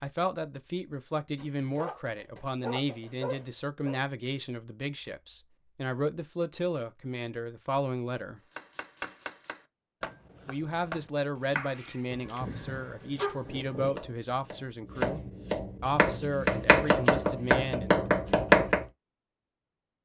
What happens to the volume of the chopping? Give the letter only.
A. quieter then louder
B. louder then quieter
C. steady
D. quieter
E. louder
E.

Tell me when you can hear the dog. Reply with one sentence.
You can hear the dog from 1.4 to 4.0 s and from 12.1 to 13.9 s.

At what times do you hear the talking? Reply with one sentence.
The talking can be heard from 0.0 to 8.4 s, from 10.4 to 15.2 s and from 15.8 to 18.0 s.